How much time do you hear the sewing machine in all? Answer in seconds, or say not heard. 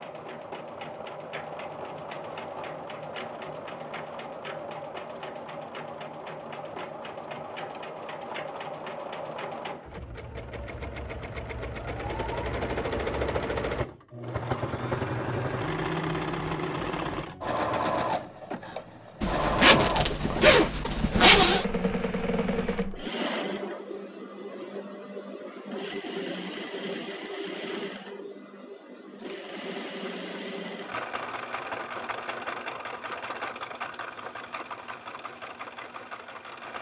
37 s.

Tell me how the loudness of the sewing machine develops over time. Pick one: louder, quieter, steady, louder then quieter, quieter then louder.
louder then quieter.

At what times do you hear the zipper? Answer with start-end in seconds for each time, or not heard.
19.2-21.6.